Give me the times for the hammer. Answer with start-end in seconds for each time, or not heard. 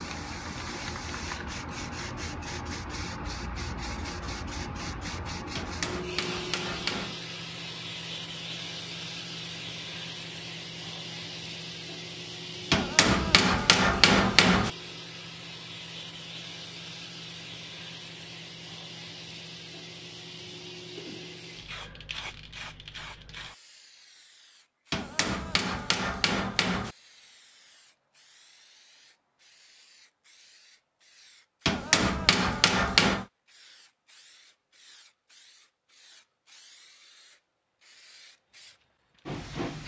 5.5-7.2, 12.7-14.7, 24.9-26.9, 31.6-33.2.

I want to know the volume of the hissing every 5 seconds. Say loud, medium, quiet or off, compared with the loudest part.
loud, loud, loud, medium, medium, quiet, quiet, medium.